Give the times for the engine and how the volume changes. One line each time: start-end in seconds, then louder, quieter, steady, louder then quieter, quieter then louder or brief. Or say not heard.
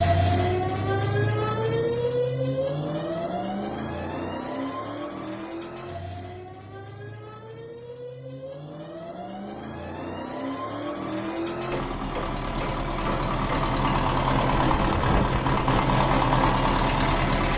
0.0-17.5 quieter then louder.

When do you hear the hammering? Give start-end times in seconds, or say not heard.
11.7-13.3.